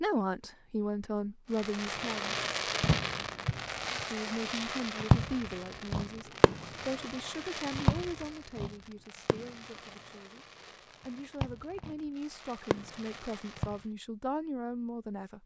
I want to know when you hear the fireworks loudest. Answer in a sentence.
The loudest moment of the fireworks is at 5 seconds.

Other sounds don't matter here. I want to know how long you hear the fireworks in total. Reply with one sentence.
You can hear the fireworks for 12 seconds altogether.